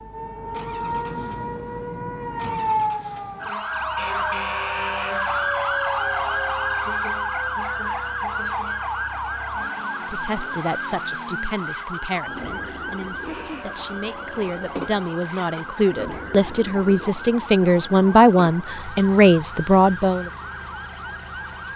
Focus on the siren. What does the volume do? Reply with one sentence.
The volume of the siren goes down.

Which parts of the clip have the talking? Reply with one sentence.
You can hear the talking from 10.1 to 20.3 s.